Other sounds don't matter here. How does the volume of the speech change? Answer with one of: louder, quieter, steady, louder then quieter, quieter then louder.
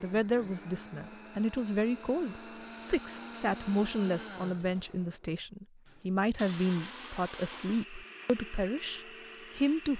steady.